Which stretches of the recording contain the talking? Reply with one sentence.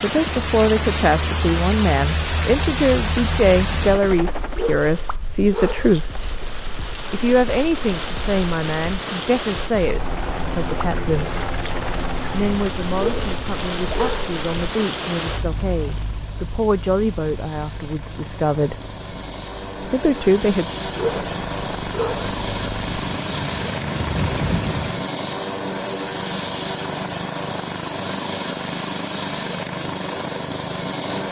You can hear the talking from 0.0 to 6.2 s, from 7.1 to 11.3 s, from 12.3 to 18.8 s and from 19.8 to 20.6 s.